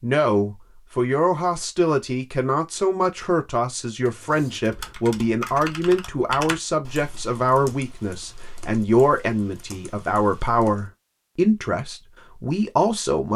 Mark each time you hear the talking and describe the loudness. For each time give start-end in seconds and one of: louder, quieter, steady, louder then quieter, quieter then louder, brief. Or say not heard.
0.0-13.3 steady.